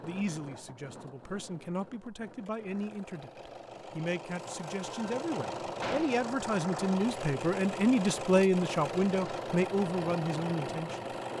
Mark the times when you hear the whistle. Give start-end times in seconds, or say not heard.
not heard.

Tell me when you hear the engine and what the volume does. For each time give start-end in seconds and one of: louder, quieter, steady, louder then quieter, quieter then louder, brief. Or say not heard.
0.0-11.3 louder.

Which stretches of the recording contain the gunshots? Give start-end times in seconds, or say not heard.
5.8-6.2.